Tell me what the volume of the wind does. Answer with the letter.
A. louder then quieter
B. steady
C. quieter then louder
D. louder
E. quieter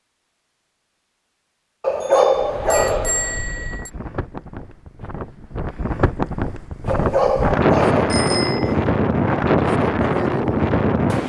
D.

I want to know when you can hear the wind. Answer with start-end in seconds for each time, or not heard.
2.4-11.2.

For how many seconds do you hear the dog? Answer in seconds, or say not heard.
4 s.